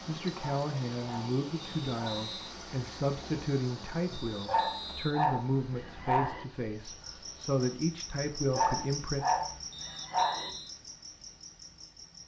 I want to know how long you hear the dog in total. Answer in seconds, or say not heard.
6 s.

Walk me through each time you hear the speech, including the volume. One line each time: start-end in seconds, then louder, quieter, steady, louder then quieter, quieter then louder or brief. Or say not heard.
0.1-9.2 steady.